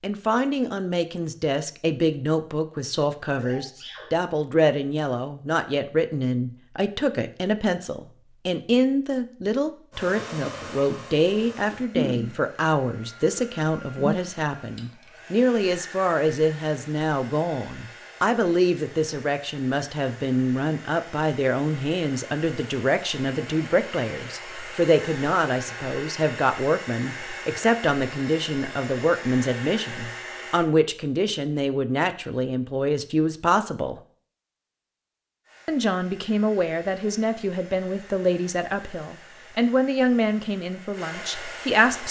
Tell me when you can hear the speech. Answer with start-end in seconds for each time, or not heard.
0.0-34.0, 35.6-42.0.